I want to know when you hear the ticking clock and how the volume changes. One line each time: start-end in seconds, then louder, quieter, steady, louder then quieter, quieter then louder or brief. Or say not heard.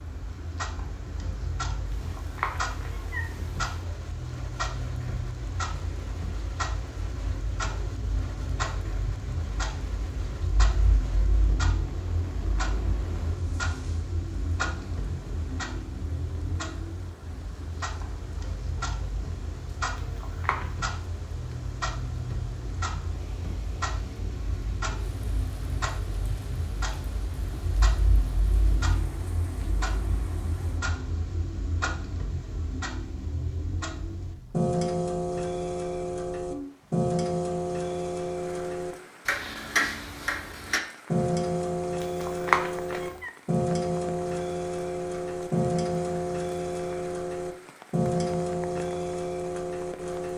0.0-50.3 louder.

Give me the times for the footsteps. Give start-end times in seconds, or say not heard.
not heard.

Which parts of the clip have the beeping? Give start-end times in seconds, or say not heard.
not heard.